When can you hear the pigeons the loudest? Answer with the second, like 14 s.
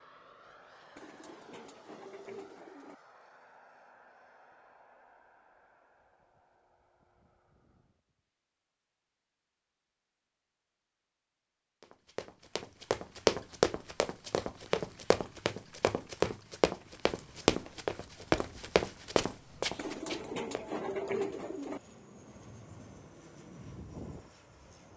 21 s.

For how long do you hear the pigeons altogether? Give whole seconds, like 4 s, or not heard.
4 s.